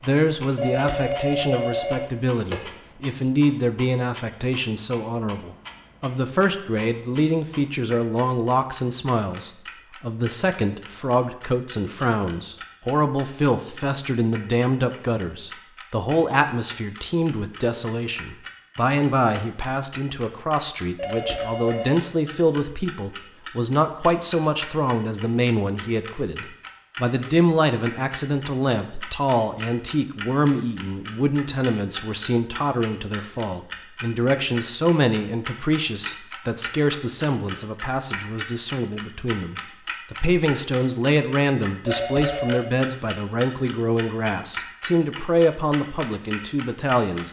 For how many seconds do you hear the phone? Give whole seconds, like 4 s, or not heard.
4 s.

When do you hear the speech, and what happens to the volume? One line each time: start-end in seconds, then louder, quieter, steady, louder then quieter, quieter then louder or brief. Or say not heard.
0.0-47.2 steady.